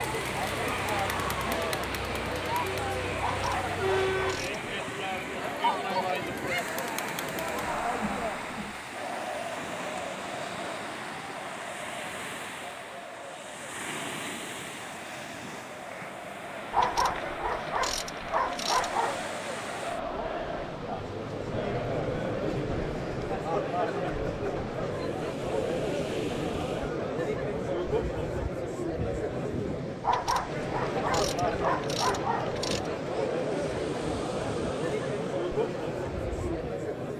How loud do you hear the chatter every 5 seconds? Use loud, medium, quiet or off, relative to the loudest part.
loud, loud, medium, medium, loud, loud, loud, loud.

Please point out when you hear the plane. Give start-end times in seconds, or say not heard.
0.0-4.5.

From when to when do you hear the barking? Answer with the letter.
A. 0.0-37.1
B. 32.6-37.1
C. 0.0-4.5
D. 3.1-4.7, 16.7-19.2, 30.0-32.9
D.